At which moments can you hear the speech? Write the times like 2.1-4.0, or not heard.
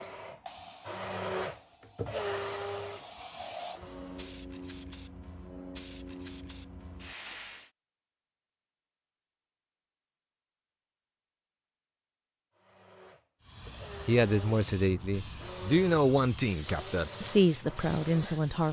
14.1-18.6.